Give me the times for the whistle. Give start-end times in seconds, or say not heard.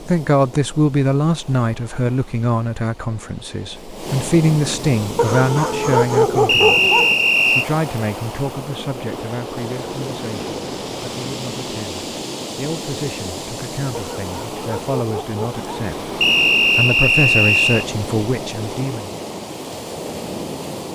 6.5-7.7, 16.2-17.9.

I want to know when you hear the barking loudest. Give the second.
6 s.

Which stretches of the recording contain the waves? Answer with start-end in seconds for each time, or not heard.
0.0-20.8.